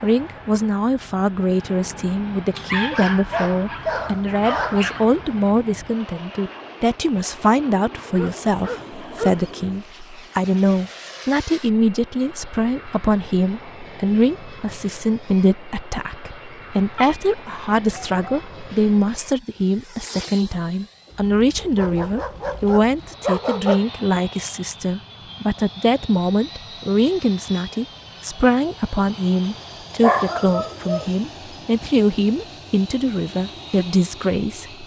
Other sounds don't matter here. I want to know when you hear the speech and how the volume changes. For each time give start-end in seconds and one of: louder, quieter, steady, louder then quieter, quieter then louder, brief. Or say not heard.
0.0-34.8 steady.